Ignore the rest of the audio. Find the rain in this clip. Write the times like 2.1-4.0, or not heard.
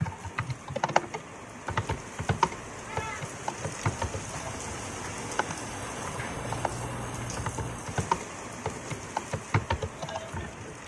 0.0-10.8.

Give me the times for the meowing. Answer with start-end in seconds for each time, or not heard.
2.7-3.2, 6.3-7.8.